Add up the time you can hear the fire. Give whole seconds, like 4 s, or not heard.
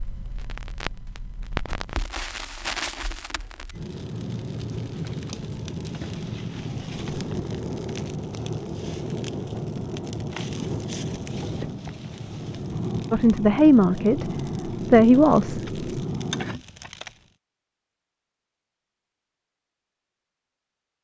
17 s.